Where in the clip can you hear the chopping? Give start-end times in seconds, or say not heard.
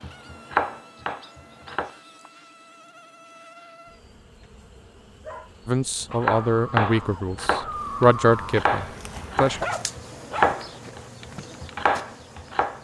0.0-1.9, 6.2-12.7.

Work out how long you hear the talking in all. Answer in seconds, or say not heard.
4 s.